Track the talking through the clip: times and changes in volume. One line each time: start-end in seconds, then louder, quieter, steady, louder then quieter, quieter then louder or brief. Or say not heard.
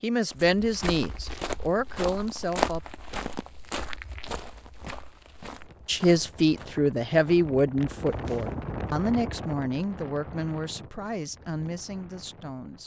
0.0-2.8 brief
5.8-12.8 quieter.